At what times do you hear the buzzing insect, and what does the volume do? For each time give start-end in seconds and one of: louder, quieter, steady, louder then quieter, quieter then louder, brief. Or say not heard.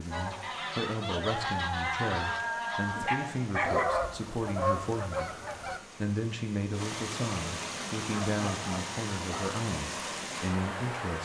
not heard.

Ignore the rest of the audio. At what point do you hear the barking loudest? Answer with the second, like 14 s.
4 s.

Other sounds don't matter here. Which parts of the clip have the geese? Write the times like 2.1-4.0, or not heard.
0.1-5.8.